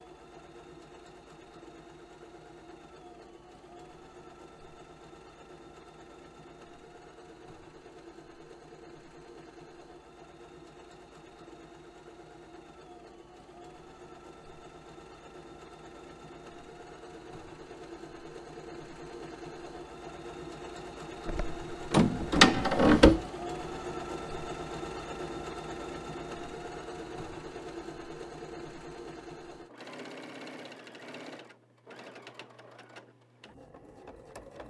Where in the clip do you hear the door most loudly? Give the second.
23 s.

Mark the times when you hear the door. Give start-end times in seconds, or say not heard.
21.2-23.2.